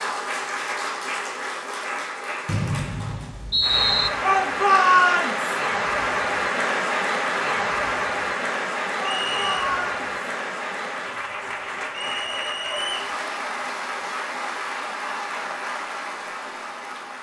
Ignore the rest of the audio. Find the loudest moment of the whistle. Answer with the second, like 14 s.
4 s.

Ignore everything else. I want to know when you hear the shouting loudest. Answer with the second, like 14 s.
5 s.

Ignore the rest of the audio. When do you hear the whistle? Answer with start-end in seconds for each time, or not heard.
2.5-4.1, 9.1-9.7, 11.9-13.2.